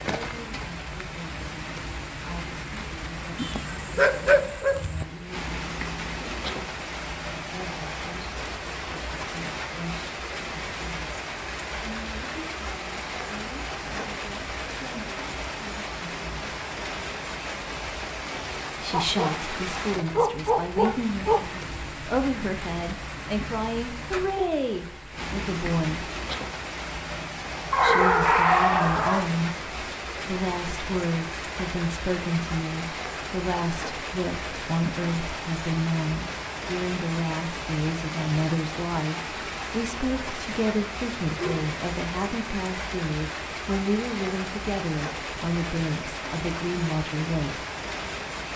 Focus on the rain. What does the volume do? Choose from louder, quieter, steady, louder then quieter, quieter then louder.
steady.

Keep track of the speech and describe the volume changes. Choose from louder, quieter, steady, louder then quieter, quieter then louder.
louder.